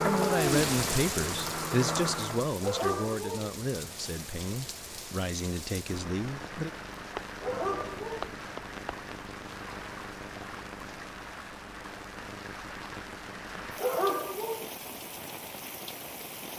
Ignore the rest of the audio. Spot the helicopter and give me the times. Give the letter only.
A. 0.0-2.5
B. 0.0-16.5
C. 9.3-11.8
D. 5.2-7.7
A.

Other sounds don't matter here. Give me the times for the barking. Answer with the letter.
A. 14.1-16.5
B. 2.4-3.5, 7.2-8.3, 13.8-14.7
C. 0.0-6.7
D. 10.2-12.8
B.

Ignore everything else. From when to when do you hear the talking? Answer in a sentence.
The talking can be heard from 0.0 to 6.7 s.